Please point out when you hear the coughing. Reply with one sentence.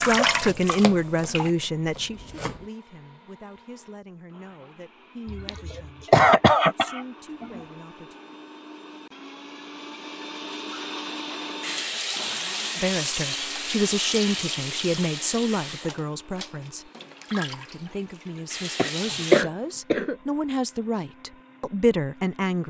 The coughing can be heard from 5.2 to 7.6 s and from 18.8 to 20.1 s.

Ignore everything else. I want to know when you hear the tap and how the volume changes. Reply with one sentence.
The tap can be heard briefly from 0.0 to 1.5 s; and from 11.4 to 19.4 s, getting quieter.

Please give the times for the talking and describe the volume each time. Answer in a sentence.
The talking can be heard from 0.1 to 8.2 s, getting quieter; and from 12.8 to 22.6 s, getting quieter then louder.